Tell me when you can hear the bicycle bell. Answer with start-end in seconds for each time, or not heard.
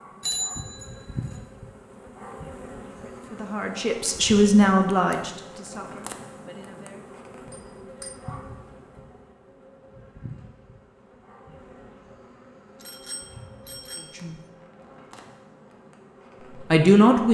0.2-1.3, 7.5-8.2, 12.8-14.2.